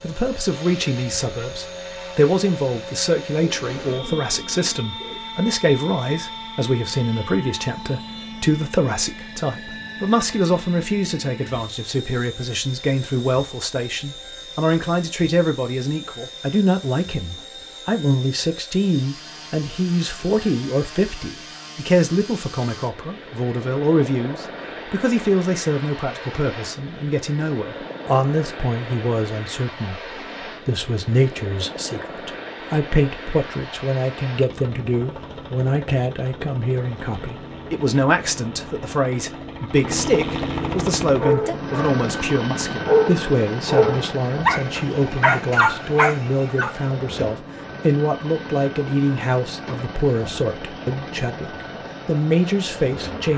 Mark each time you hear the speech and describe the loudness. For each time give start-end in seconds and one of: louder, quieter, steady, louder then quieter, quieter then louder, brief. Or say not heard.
0.0-53.3 steady.